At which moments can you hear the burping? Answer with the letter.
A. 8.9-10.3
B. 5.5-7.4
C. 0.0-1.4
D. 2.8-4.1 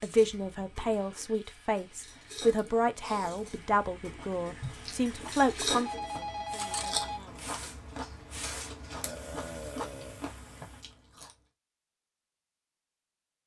A.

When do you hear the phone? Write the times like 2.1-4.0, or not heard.
5.5-7.4.